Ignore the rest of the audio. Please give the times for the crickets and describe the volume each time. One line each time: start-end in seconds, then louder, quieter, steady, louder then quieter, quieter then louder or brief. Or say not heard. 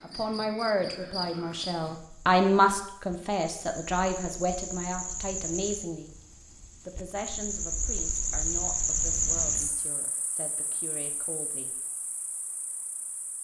0.0-13.3 louder then quieter.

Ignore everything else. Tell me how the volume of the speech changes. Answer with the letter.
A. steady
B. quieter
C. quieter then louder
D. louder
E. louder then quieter
B.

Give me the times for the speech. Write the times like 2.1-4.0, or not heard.
0.0-6.2, 6.8-11.8.